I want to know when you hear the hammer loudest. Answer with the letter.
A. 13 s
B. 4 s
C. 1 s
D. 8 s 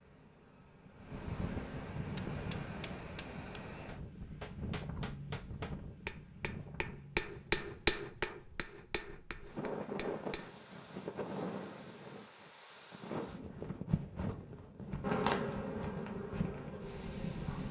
D.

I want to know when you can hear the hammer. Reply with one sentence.
The hammer can be heard from 2.0 to 10.6 s.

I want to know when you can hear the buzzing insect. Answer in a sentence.
You can hear the buzzing insect from 15.0 to 17.6 s.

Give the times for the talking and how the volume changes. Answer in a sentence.
The talking can't be heard in this clip.